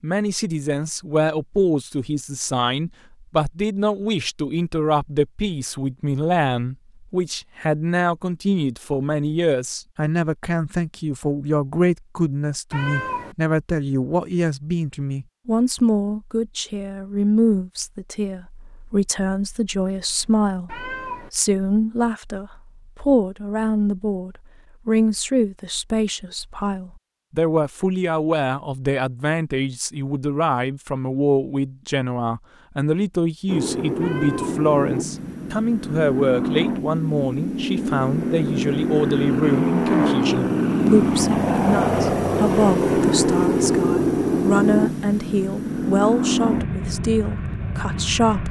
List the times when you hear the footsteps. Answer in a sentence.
You can't hear the footsteps here.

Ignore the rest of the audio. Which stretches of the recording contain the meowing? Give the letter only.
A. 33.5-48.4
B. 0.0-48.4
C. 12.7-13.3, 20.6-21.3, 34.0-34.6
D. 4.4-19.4
C.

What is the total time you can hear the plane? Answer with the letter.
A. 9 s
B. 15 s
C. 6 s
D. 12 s
B.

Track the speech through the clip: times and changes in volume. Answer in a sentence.
You can hear the speech from 0.0 to 48.4 s, at a steady volume.